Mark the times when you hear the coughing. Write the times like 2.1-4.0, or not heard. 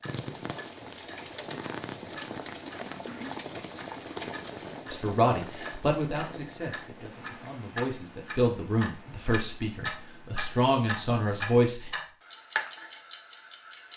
2.9-3.4.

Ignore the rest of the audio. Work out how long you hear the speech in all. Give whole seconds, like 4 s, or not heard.
7 s.